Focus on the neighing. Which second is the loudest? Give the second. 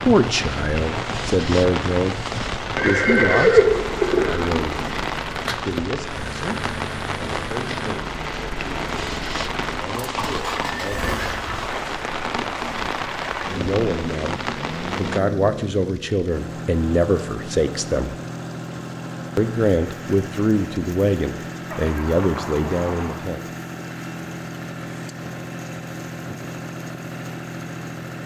4 s.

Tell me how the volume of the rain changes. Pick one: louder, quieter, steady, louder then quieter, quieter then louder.
steady.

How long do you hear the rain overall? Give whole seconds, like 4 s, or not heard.
15 s.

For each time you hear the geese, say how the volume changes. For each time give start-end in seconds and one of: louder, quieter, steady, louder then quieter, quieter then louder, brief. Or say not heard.
not heard.